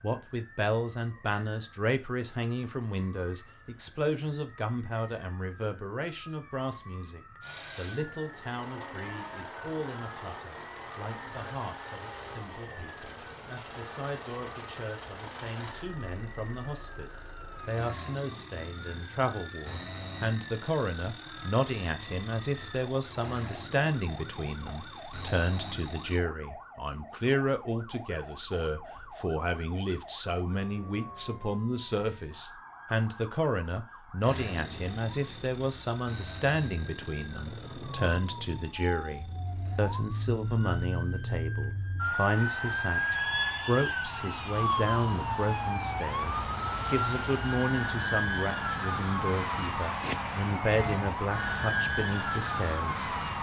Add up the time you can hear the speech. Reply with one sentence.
You can hear the speech for 53 seconds altogether.